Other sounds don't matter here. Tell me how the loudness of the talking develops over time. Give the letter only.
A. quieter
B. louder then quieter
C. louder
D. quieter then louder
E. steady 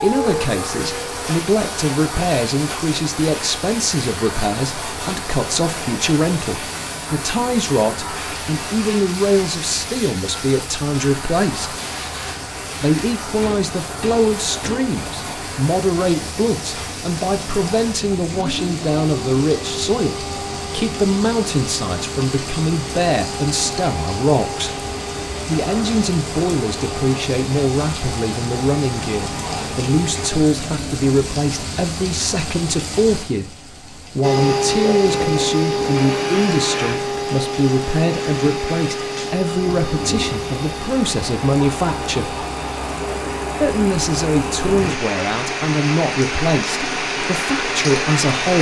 E.